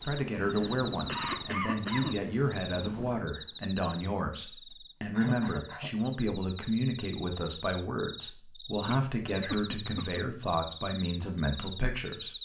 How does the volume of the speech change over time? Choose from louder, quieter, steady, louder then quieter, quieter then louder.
steady.